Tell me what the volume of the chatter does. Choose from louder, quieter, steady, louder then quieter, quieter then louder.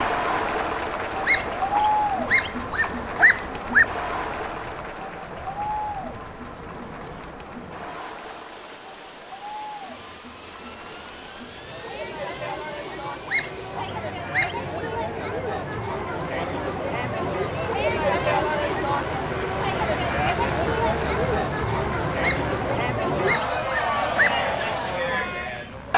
quieter then louder.